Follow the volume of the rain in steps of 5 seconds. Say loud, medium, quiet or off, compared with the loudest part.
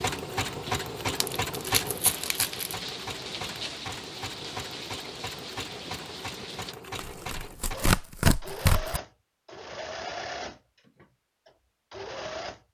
loud, loud, off.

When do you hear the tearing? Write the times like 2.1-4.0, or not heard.
1.2-2.8, 7.0-9.0.